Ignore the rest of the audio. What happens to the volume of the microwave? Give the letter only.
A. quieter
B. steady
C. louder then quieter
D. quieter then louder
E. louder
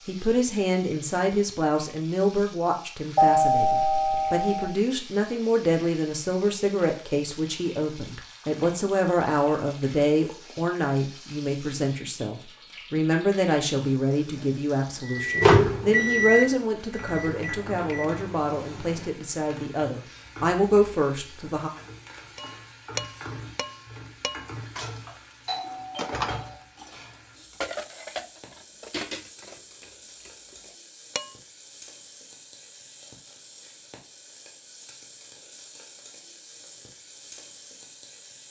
A.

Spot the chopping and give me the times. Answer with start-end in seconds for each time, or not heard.
not heard.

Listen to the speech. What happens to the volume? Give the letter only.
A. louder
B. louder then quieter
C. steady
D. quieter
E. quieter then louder
C.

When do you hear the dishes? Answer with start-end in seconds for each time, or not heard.
22.4-31.4.